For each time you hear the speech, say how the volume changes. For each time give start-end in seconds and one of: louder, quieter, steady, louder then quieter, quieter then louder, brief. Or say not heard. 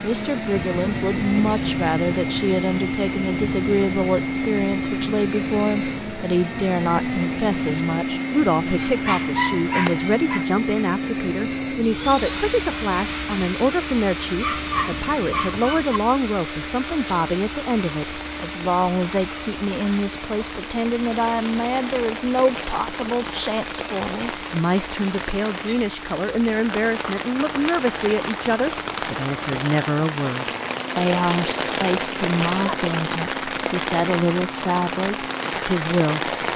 0.0-36.4 steady.